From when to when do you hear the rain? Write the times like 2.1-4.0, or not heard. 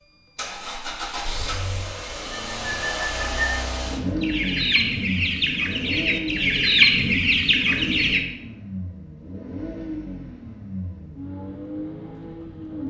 not heard.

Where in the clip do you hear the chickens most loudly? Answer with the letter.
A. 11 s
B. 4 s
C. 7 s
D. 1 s
C.